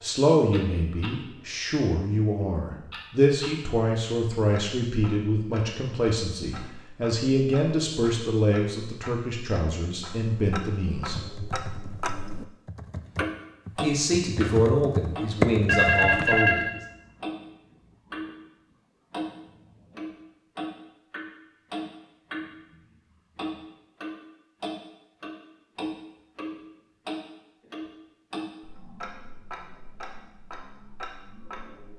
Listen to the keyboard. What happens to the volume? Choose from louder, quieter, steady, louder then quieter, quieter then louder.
louder.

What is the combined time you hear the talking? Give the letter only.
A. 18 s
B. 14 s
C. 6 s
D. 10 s
B.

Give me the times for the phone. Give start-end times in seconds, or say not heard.
15.7-16.7.